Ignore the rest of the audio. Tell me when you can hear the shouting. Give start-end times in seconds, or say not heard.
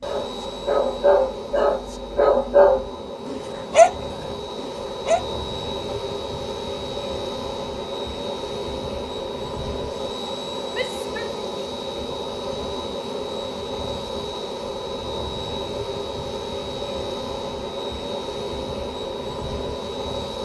10.7-11.4.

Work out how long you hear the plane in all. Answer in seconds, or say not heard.
20 s.